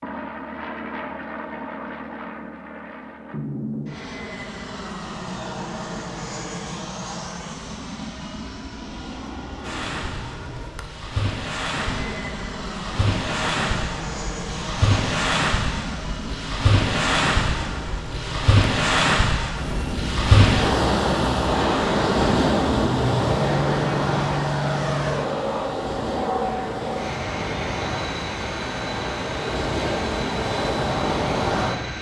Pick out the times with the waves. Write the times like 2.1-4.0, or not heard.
9.6-31.9.